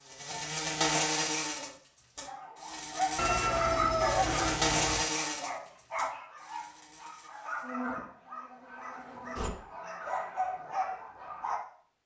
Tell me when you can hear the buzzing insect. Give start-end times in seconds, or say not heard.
0.1-9.5.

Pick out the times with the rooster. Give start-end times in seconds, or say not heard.
3.1-5.0.